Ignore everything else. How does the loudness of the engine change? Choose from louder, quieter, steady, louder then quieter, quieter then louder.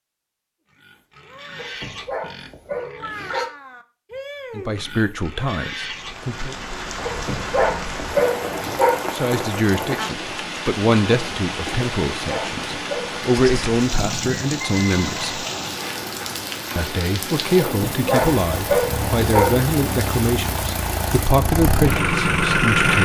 louder.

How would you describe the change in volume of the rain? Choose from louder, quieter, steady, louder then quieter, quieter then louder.
steady.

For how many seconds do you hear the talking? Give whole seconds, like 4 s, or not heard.
15 s.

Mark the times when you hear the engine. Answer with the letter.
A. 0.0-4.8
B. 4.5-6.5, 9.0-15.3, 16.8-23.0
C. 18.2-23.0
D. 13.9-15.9
C.